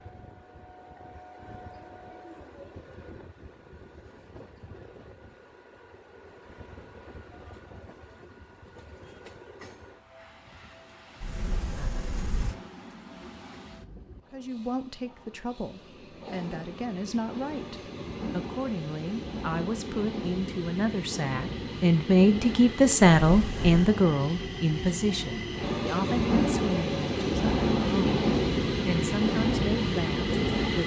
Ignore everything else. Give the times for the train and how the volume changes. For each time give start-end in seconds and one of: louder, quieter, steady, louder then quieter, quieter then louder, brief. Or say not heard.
0.0-30.8 louder.